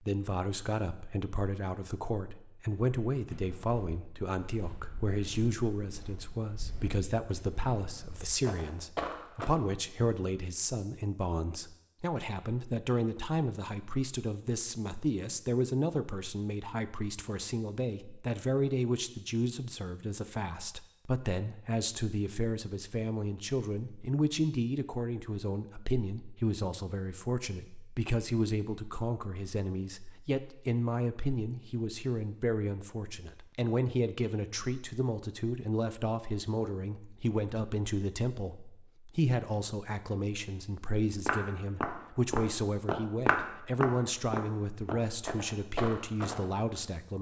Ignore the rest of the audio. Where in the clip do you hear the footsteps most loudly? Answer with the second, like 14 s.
43 s.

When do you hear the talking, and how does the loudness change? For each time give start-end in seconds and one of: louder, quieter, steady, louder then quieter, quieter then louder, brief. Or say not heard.
0.0-47.1 steady.